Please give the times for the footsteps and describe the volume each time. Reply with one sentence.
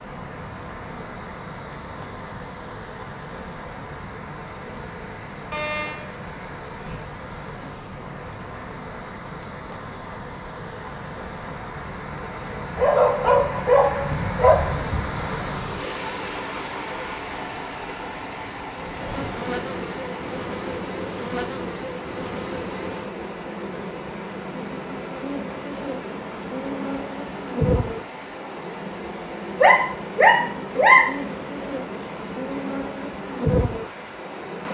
You can't hear the footsteps here.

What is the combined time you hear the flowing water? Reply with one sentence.
The flowing water can be heard for 35 seconds in total.